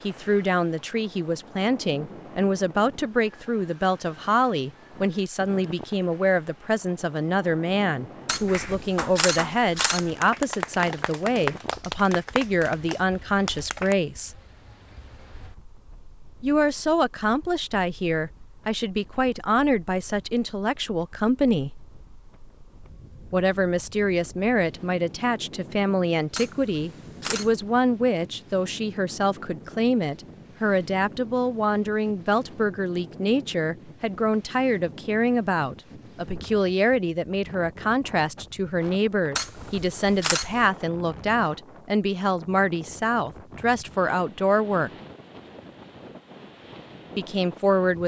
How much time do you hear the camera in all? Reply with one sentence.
You can hear the camera for 4 seconds altogether.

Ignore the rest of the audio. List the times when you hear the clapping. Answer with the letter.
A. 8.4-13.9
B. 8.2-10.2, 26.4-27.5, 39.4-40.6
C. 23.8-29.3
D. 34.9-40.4
A.